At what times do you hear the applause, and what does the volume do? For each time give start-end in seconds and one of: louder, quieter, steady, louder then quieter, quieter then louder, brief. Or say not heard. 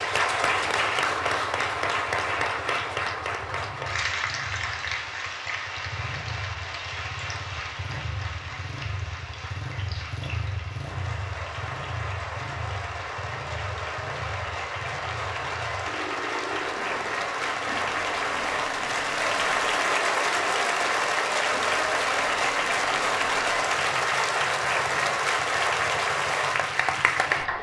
0.0-27.5 quieter then louder.